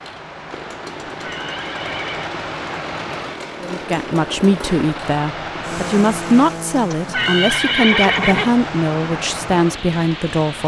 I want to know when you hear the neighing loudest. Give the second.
8 s.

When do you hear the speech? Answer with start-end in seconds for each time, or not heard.
3.6-10.6.